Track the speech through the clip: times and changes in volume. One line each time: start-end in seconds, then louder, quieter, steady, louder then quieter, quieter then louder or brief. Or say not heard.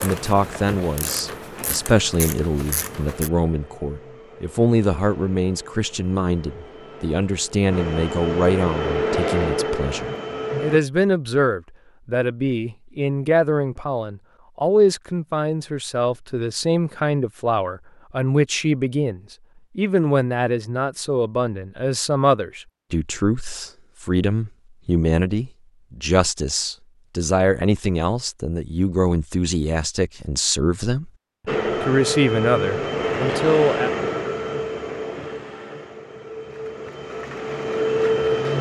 0.0-31.1 steady
31.8-33.9 brief.